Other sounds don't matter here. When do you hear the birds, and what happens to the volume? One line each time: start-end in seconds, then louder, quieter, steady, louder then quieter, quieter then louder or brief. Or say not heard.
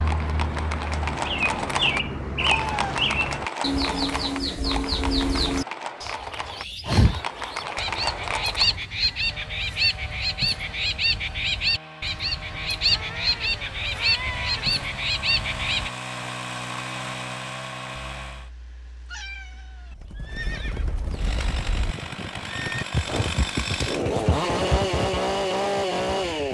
0.0-15.9 steady.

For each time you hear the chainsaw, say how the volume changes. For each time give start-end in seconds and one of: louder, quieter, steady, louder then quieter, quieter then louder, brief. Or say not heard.
9.1-18.5 louder
21.1-26.5 louder.